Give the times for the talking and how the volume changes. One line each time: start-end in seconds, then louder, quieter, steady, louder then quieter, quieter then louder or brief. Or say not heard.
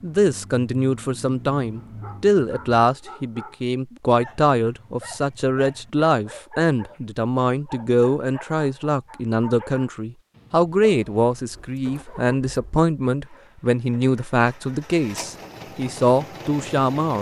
0.0-17.1 steady.